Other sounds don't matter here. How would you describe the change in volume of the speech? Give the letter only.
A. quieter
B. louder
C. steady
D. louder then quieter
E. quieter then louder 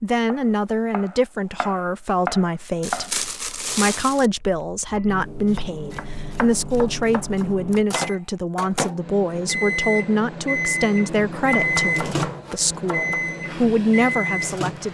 C.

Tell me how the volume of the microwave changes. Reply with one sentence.
The volume of the microwave goes up.